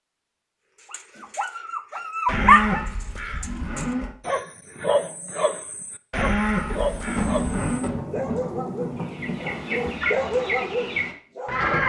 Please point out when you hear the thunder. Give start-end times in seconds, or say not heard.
6.7-10.0.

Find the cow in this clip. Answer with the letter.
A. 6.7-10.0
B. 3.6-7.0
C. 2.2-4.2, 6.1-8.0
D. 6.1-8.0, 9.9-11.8
C.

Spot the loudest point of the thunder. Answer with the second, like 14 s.
7 s.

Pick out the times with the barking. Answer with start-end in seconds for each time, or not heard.
0.9-11.7.